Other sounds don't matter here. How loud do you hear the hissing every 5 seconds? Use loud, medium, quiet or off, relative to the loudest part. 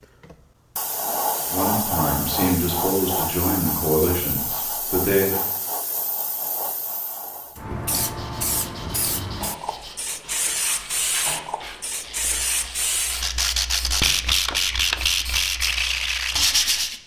loud, loud, loud, quiet.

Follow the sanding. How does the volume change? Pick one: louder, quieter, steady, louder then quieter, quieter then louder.
louder.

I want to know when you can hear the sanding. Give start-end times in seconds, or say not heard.
8.0-17.0.